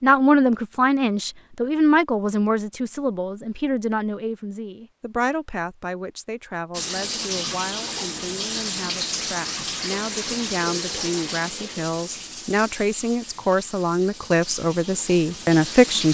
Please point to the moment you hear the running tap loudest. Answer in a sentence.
The volume of the running tap peaks at 9 seconds.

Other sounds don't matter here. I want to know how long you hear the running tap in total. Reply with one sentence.
You can hear the running tap for 9 seconds altogether.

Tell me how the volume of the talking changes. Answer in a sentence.
The loudness of the talking goes down, then up.